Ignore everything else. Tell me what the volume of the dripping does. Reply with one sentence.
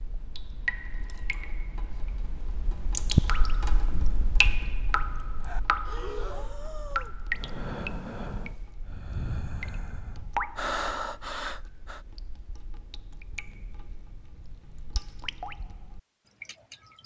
The loudness of the dripping goes down.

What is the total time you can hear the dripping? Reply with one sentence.
The dripping can be heard for 17 seconds in total.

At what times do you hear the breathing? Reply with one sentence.
The breathing can be heard from 5.3 to 12.0 s.